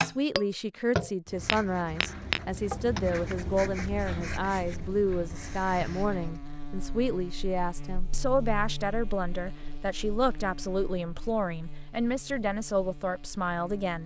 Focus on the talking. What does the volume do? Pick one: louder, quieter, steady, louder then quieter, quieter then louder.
steady.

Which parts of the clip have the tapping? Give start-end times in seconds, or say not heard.
0.0-3.9.